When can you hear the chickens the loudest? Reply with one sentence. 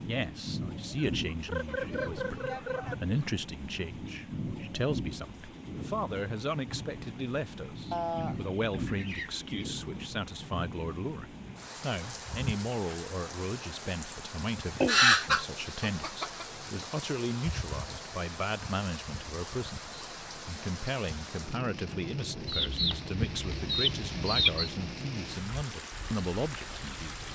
The loudest moment of the chickens is at 15 seconds.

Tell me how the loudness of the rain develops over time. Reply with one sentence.
The loudness of the rain stays about the same.